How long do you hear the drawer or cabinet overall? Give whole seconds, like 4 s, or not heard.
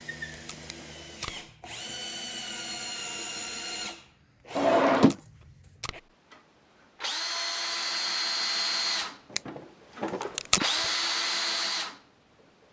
2 s.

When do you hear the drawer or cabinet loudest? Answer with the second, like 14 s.
5 s.